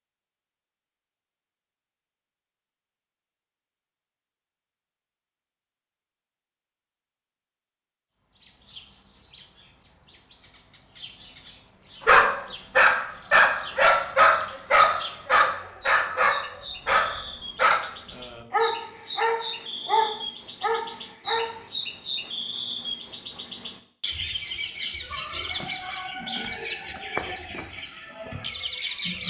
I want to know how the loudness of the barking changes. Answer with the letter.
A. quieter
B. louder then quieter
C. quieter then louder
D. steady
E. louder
A.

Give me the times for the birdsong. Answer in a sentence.
You can hear the birdsong from 8.2 to 29.2 s.